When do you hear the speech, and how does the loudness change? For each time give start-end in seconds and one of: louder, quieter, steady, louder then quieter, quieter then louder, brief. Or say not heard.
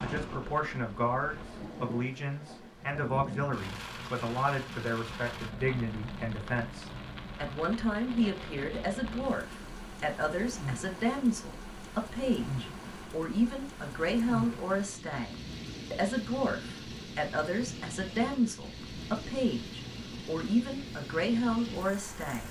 0.0-22.4 steady.